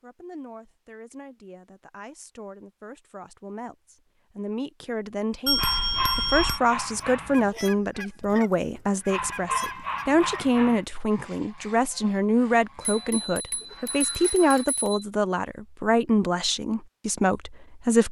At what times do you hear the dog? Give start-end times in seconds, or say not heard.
5.5-7.5, 9.1-10.8.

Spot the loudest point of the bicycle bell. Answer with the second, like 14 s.
6 s.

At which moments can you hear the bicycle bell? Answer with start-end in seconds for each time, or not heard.
5.5-6.6, 12.8-15.1.